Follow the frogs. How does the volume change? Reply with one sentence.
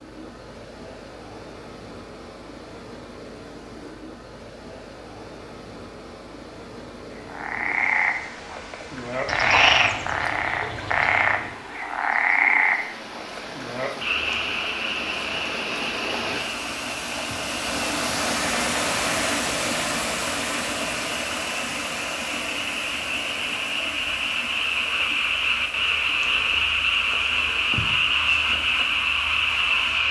The volume of the frogs goes down, then up.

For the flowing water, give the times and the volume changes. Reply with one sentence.
The flowing water can be heard from 0.0 to 30.0 s, getting louder then quieter.